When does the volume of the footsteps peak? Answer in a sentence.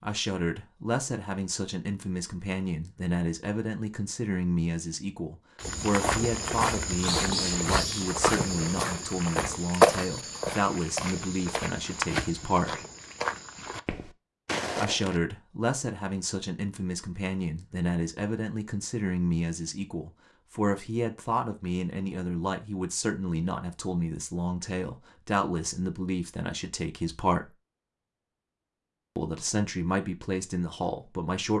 The volume of the footsteps peaks at 10 seconds.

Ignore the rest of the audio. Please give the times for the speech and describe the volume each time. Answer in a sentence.
You can hear the speech from 0.0 to 12.8 s, at a steady volume; from 14.8 to 27.5 s, at a steady volume; and briefly from 29.1 to 31.5 s.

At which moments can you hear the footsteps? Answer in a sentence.
You can hear the footsteps from 5.6 to 15.2 s.